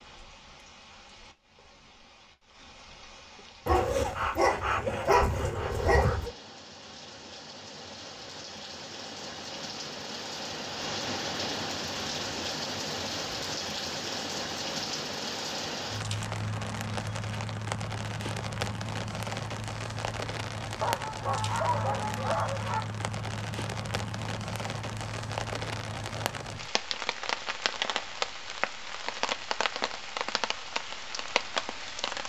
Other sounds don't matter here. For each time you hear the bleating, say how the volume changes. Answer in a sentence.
The bleating can't be heard in this clip.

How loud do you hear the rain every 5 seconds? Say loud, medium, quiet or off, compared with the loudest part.
quiet, medium, loud, loud, loud, loud, loud.